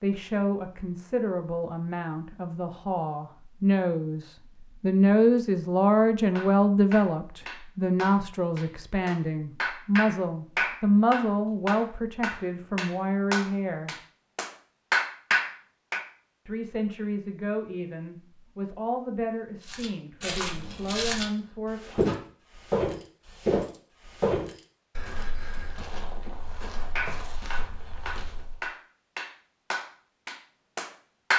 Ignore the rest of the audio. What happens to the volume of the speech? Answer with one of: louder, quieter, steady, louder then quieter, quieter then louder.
louder then quieter.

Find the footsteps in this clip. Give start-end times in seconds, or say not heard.
19.6-28.6.